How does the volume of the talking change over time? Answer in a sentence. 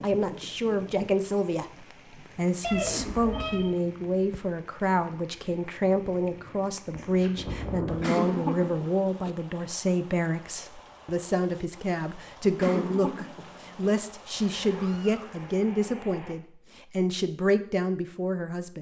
The volume of the talking stays about the same.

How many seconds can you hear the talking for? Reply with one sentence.
You can hear the talking for 19 seconds altogether.